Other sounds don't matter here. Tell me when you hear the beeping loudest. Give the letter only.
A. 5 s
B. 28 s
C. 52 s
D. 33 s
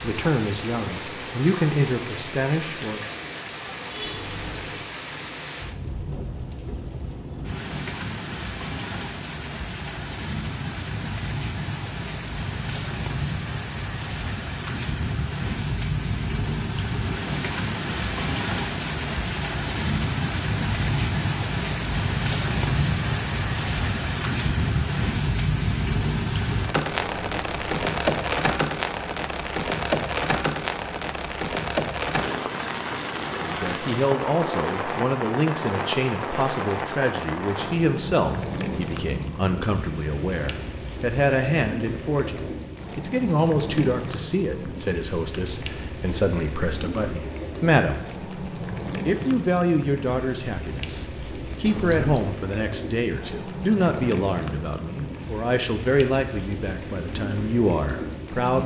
C.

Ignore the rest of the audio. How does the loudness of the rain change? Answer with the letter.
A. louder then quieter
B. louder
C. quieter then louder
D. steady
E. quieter
A.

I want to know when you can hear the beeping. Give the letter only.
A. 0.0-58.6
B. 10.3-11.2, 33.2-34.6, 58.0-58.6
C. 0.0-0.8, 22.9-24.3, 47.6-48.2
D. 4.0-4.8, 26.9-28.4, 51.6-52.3
D.